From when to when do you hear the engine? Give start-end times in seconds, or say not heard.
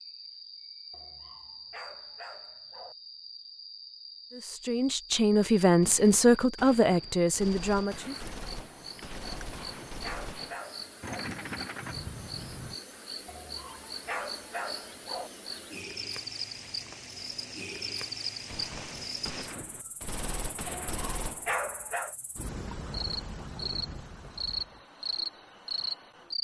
11.0-12.8.